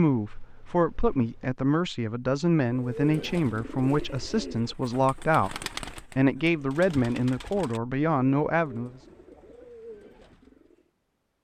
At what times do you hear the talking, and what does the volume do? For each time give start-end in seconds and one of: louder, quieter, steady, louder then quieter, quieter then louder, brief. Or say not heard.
0.0-8.9 steady.